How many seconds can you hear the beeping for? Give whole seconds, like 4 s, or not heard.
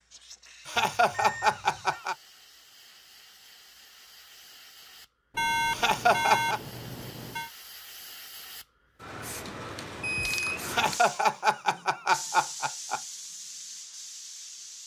4 s.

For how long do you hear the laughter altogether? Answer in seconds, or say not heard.
5 s.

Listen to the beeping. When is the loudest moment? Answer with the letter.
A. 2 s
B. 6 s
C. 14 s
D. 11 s
B.